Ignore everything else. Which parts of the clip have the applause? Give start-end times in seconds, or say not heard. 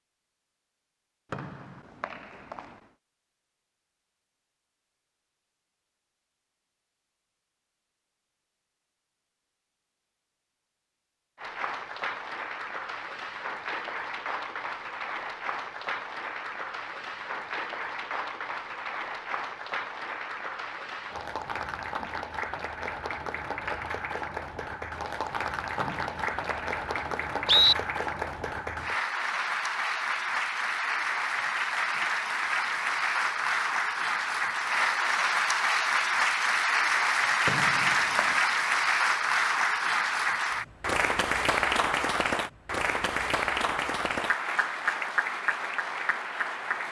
11.3-46.8.